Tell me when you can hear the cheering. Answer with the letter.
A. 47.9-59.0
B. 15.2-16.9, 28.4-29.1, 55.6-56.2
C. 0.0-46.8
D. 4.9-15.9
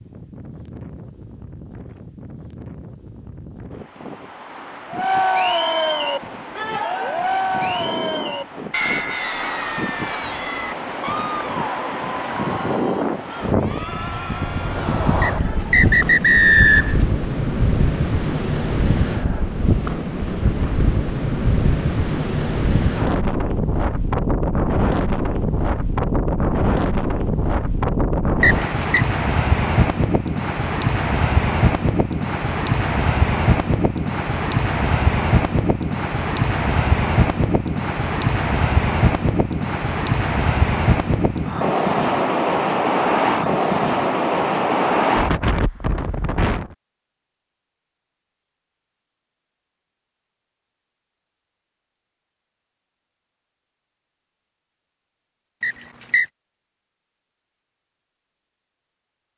D.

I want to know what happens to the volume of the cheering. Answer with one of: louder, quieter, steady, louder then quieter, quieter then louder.
quieter.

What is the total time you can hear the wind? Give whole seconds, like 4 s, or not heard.
47 s.